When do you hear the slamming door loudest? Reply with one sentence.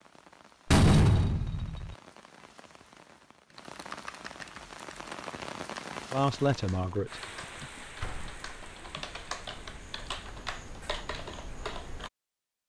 The loudest moment of the slamming door is at 1 second.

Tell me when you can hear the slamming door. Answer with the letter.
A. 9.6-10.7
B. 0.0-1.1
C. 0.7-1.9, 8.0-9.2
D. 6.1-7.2
C.